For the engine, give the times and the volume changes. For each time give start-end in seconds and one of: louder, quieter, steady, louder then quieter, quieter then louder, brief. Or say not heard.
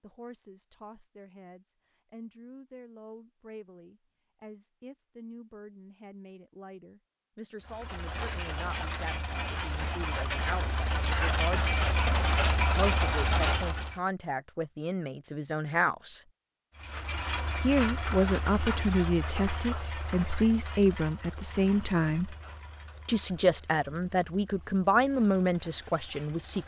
7.6-14.0 louder
16.8-26.6 quieter.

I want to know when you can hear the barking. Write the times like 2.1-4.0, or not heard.
not heard.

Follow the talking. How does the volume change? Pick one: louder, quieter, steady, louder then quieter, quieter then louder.
louder.